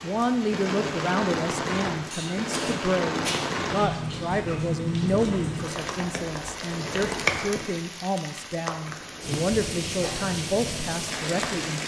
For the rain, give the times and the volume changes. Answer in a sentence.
You can hear the rain from 0.0 to 11.8 s, at a steady volume.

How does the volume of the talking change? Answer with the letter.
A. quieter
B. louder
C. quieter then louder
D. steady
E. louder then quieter
D.